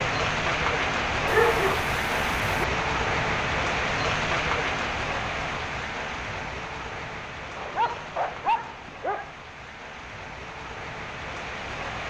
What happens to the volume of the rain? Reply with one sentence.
The volume of the rain goes down.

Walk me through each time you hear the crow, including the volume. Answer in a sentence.
The crow can't be heard in this clip.